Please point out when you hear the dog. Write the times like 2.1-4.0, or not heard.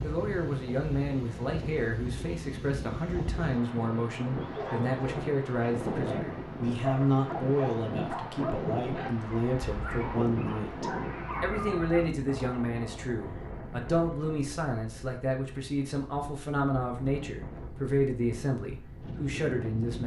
4.4-12.1.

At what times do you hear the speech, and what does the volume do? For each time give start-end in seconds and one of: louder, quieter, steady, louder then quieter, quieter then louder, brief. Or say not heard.
0.0-20.0 steady.